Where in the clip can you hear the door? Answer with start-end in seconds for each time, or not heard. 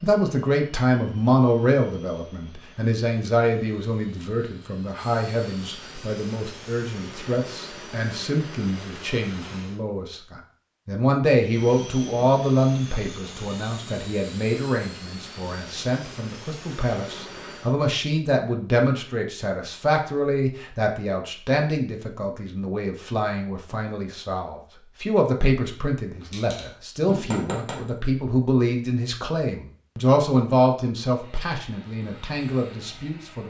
not heard.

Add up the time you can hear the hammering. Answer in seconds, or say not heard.
2 s.